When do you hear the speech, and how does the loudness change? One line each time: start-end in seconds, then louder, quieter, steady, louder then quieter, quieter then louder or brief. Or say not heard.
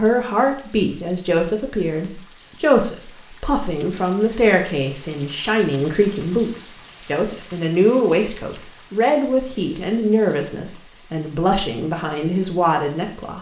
0.0-13.3 steady.